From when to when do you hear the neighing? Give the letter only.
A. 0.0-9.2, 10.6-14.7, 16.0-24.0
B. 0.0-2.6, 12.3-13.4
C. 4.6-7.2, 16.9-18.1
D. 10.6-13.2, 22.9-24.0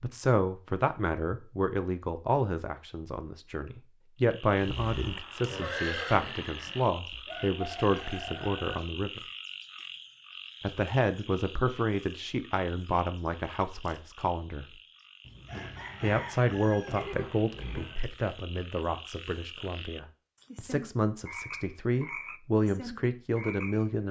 C.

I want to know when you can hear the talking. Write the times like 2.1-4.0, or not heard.
0.0-9.2, 10.6-14.7, 16.0-24.0.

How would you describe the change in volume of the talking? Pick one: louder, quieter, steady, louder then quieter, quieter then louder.
steady.